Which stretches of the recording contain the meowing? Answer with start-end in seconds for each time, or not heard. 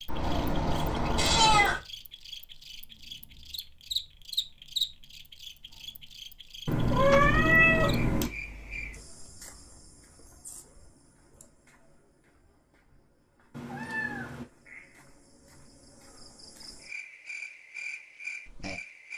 0.1-1.8, 6.7-8.3, 13.5-14.4.